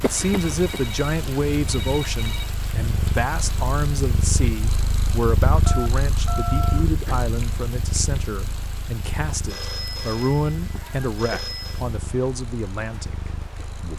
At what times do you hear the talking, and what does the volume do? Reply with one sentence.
You can hear the talking from 0.0 to 13.9 s, at a steady volume.